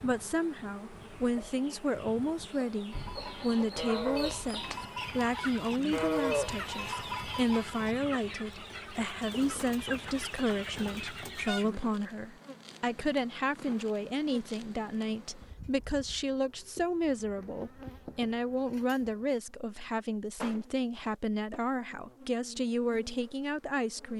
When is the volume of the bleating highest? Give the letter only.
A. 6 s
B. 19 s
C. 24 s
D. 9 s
A.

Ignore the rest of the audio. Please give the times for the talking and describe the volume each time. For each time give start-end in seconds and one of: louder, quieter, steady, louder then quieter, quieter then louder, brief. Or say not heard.
0.0-24.1 steady.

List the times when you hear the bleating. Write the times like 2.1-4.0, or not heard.
2.9-8.0.